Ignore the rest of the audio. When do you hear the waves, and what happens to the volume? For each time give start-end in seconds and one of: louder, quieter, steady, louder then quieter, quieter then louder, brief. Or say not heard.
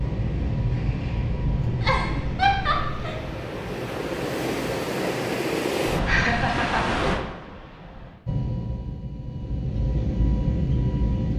0.0-8.2 louder.